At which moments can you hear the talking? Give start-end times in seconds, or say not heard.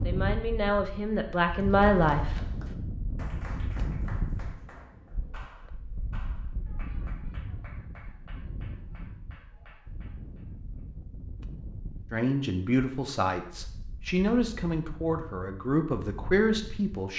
0.0-2.4, 12.1-17.1.